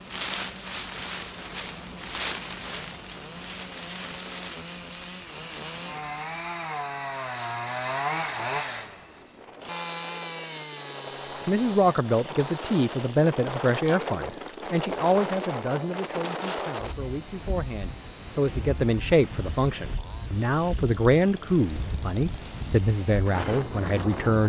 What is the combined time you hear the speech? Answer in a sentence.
The speech can be heard for 13 seconds in total.